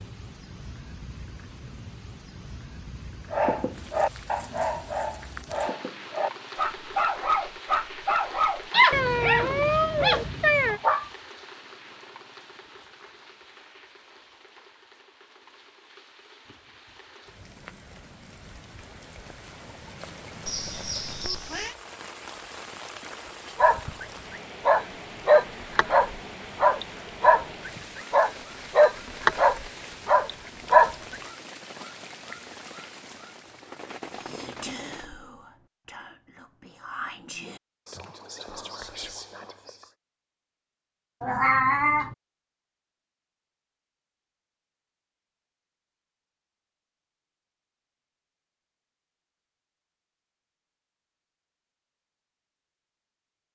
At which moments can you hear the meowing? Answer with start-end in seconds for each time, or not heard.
8.9-10.8, 20.4-21.8, 41.2-42.1.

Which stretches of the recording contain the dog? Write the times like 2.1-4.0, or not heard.
3.3-11.1, 23.6-31.2.